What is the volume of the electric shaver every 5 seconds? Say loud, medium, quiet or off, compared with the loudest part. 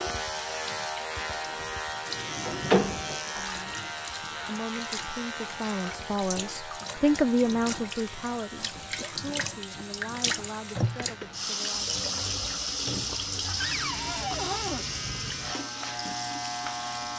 loud, medium, medium, loud.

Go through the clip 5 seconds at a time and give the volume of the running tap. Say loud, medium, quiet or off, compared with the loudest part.
medium, medium, loud, medium.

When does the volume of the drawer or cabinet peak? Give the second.
3 s.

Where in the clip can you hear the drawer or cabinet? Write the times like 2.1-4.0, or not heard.
1.3-3.4, 13.6-14.8.